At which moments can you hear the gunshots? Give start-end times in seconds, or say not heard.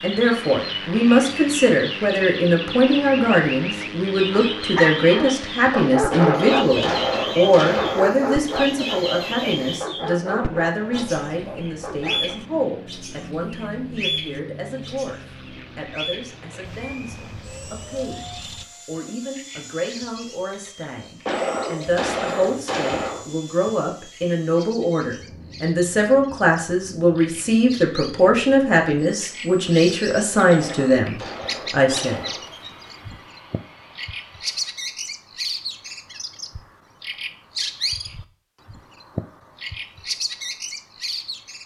6.1-8.1, 21.2-23.2, 30.4-32.5.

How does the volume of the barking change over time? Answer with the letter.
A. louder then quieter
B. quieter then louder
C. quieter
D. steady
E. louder
C.